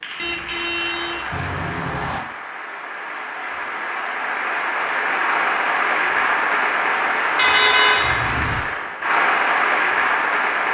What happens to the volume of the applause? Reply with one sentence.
The volume of the applause goes up.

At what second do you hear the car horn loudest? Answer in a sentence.
The loudest moment of the car horn is at 8 seconds.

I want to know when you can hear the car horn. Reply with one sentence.
The car horn can be heard from 0.1 to 2.2 s and from 7.3 to 8.6 s.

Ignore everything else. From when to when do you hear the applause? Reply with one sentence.
The applause can be heard from 0.0 to 10.6 s.